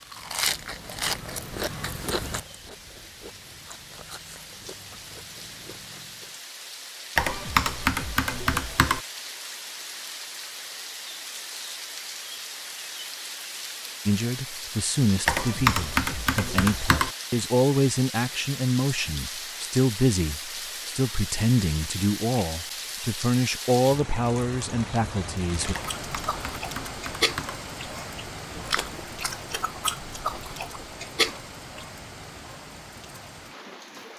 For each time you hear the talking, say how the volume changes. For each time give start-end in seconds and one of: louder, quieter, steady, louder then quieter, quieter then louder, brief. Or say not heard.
14.1-25.8 steady.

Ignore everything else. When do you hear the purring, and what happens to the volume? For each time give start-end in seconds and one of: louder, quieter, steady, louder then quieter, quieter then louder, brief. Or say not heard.
not heard.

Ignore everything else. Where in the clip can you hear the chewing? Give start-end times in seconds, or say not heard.
0.0-6.3, 25.8-32.0.